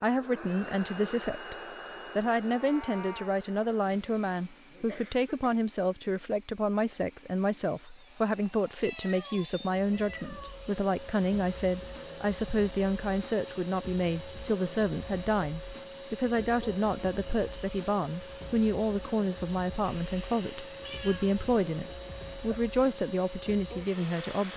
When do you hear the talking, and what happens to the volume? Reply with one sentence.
The talking can be heard briefly from 0.0 to 1.6 s; and from 2.1 to 24.5 s, at a steady volume.